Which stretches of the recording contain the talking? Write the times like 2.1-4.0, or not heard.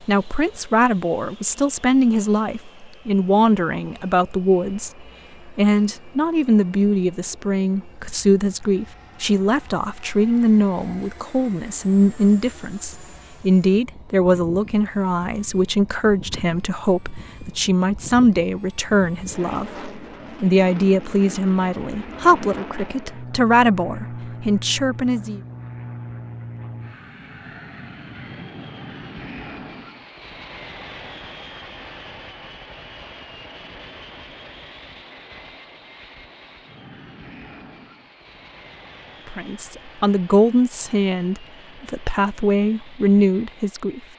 0.1-25.4, 39.2-44.0.